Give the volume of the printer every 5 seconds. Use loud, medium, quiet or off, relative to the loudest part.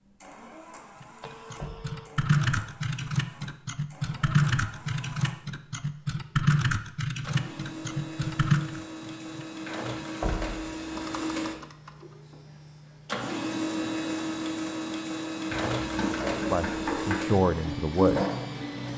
quiet, medium, loud, loud.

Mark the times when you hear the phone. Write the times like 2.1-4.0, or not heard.
1.2-2.1.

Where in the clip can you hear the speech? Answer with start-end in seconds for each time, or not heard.
16.5-18.2.